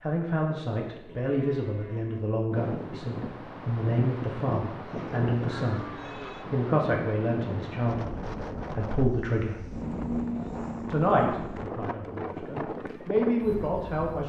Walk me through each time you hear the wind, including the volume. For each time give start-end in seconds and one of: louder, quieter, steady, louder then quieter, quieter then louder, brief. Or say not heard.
2.5-14.2 steady.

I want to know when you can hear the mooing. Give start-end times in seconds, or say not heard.
0.9-2.4, 4.8-6.5, 9.8-10.9.